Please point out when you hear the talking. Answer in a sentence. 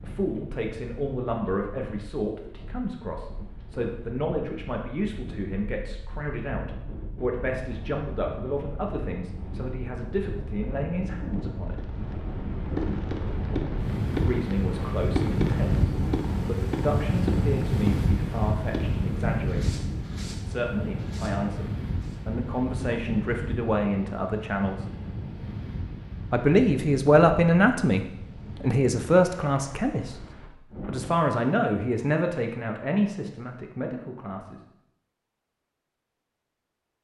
You can hear the talking from 0.0 to 11.8 s, from 14.2 to 19.9 s, from 20.4 to 24.9 s, from 26.3 to 30.1 s and from 30.9 to 34.6 s.